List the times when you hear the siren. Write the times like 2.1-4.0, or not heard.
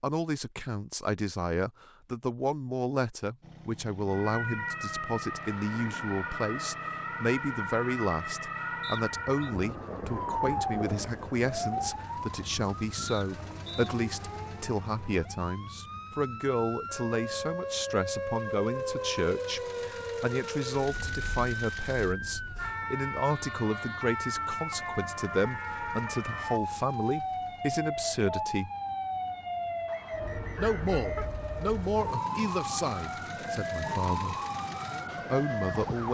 4.0-36.0.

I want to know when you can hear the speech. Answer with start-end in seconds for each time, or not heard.
0.0-28.7, 30.6-34.4, 35.1-36.0.